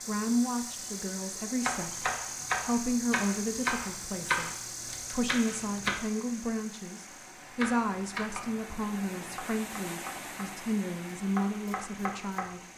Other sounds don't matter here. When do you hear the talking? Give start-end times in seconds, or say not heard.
0.0-12.6.